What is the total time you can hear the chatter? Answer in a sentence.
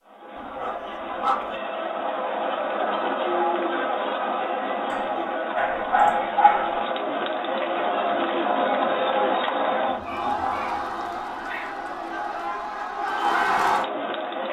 The chatter can be heard for 14 seconds in total.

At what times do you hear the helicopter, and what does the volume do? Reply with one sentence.
The helicopter can't be heard in this clip.